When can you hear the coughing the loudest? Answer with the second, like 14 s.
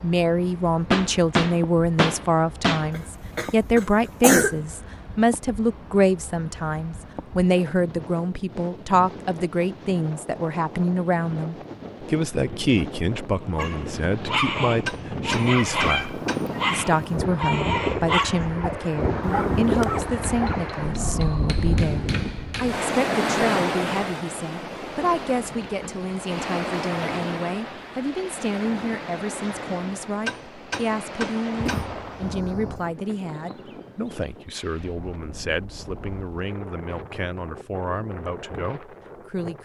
4 s.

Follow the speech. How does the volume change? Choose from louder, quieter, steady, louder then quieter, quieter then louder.
quieter.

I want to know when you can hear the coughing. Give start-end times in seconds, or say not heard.
2.9-4.5, 19.2-20.1, 31.6-33.0.